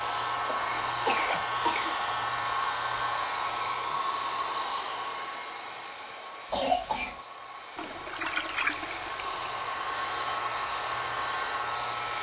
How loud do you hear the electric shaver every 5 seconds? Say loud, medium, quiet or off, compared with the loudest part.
loud, medium, loud.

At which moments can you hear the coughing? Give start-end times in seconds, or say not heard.
0.5-1.9, 6.5-7.2.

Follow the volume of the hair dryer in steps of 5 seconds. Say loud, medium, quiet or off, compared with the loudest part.
loud, medium, loud.